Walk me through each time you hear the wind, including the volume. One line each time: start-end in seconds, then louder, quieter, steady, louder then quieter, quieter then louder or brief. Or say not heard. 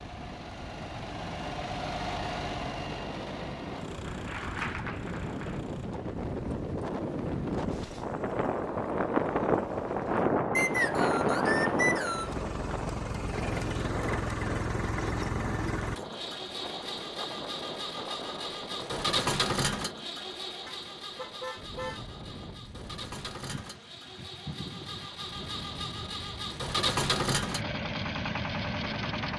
0.0-29.3 louder then quieter.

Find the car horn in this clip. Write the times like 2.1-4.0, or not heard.
20.6-22.1.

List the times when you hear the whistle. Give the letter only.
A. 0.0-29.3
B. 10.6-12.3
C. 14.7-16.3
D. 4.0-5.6
B.